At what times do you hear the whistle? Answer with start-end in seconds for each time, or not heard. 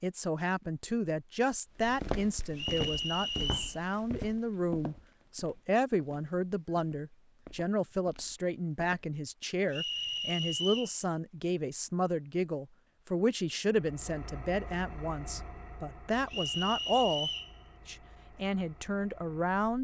2.5-3.8, 9.7-10.9, 16.3-17.6.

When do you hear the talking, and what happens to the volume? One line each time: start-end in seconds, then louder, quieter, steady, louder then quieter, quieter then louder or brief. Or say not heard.
0.0-19.7 steady.